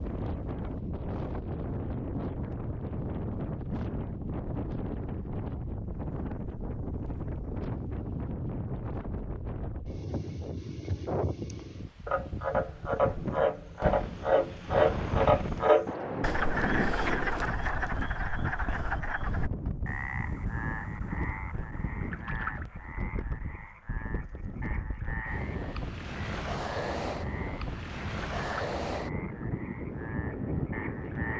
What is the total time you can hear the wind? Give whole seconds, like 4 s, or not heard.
31 s.